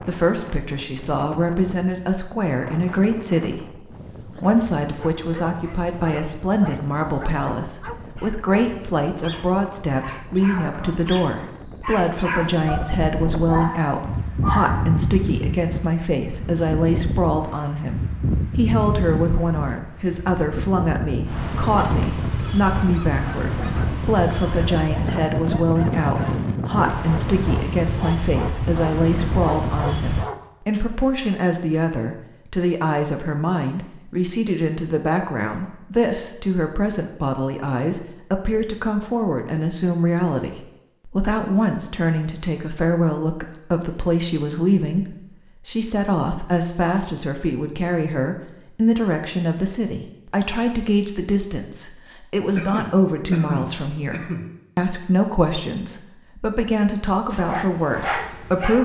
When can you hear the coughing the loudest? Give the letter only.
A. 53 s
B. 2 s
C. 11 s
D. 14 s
A.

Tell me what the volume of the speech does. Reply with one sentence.
The loudness of the speech stays about the same.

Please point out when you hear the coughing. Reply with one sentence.
The coughing can be heard from 10.4 to 11.0 s and from 52.5 to 54.5 s.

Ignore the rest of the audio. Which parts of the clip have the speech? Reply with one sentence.
The speech can be heard from 0.0 to 58.8 s.